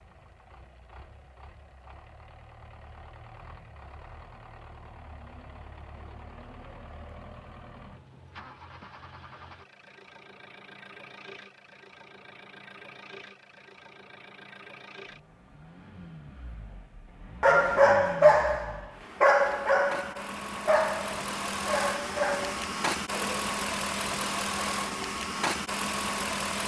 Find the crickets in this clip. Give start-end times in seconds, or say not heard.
not heard.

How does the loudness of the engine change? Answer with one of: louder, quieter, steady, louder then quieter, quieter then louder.
louder.